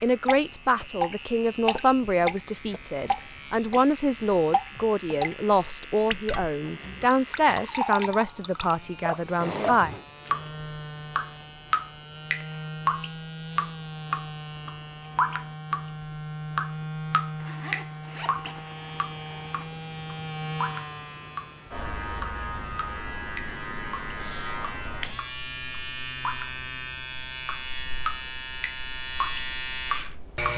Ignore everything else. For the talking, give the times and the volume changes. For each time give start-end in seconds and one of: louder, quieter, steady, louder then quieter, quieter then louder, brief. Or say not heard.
0.0-9.9 steady.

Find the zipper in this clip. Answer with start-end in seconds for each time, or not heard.
9.3-10.1, 17.4-19.6.